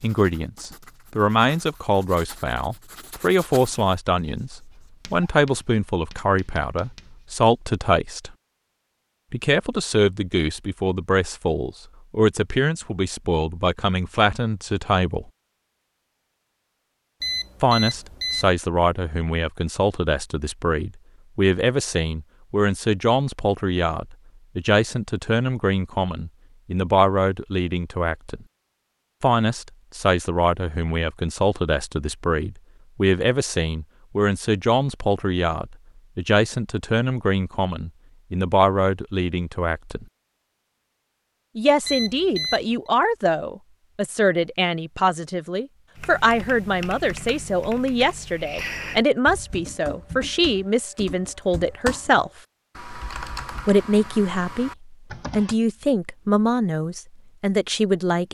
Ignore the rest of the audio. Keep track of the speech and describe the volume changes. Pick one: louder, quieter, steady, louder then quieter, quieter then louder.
steady.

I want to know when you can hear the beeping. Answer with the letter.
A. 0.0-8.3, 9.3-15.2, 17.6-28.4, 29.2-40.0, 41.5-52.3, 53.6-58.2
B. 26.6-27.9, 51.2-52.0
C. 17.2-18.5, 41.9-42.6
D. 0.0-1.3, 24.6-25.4
C.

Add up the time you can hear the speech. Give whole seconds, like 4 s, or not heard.
51 s.